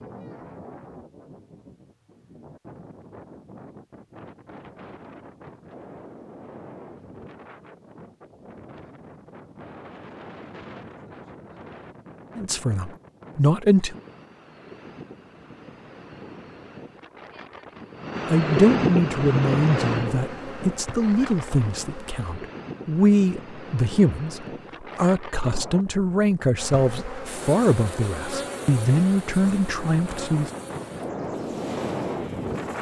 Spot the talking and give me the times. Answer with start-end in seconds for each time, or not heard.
12.3-13.9, 18.3-30.5.